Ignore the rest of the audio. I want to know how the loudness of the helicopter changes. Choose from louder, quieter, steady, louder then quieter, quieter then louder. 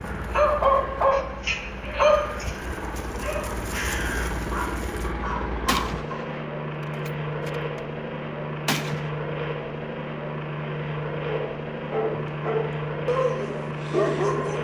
louder.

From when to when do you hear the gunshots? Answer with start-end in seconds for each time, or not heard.
5.7-7.8, 8.7-9.1.